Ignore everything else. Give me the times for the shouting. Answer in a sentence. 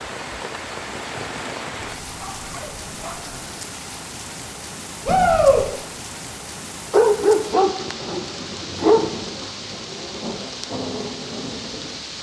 You can hear the shouting from 5.0 to 5.7 s.